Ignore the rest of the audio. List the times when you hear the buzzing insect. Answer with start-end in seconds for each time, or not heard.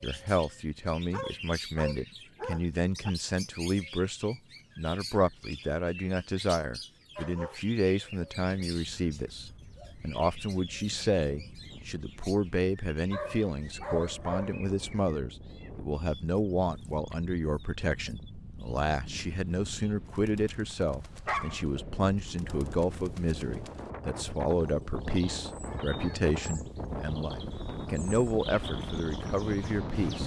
not heard.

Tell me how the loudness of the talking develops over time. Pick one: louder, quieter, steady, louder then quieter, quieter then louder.
steady.